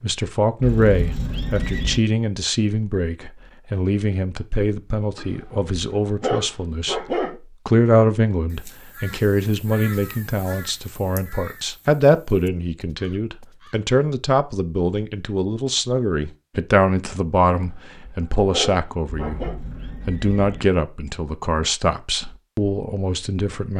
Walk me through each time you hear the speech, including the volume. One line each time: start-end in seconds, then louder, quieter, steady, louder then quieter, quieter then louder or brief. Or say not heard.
0.0-7.0 quieter
7.7-23.7 steady.